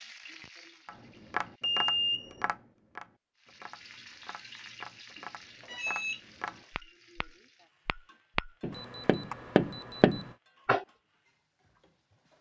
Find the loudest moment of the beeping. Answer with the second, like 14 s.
2 s.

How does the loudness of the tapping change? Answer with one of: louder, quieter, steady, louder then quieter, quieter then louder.
quieter then louder.